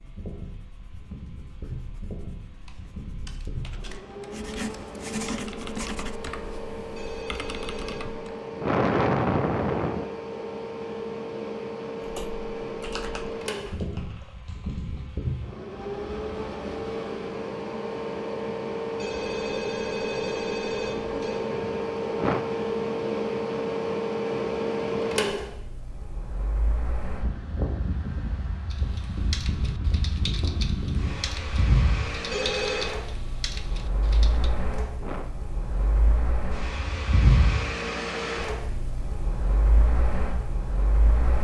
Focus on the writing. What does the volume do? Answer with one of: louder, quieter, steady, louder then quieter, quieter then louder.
louder.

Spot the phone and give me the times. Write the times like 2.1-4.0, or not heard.
7.0-8.0, 18.9-21.4, 32.3-32.9.